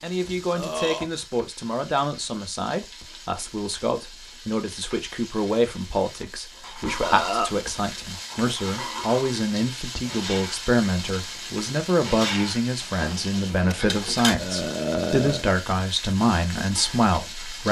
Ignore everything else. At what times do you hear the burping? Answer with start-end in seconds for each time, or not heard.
0.6-1.1, 7.0-7.5, 14.3-15.4.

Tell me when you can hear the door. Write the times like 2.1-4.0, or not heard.
not heard.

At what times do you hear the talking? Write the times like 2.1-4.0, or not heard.
0.0-17.6.